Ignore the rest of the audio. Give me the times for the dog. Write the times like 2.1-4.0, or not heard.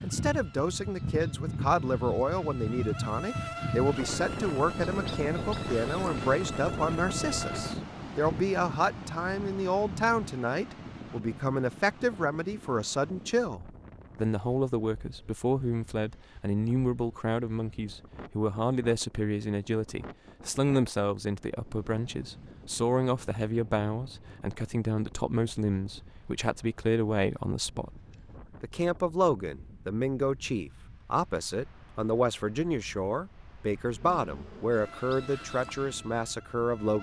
not heard.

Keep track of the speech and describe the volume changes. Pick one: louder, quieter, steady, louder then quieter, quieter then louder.
steady.